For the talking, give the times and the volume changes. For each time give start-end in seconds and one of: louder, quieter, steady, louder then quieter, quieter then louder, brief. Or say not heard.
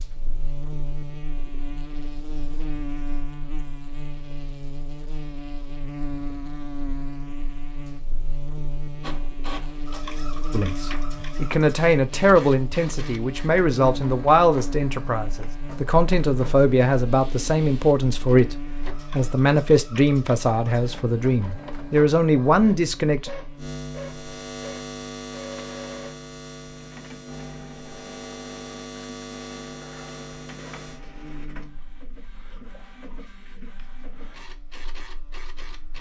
10.5-23.3 steady.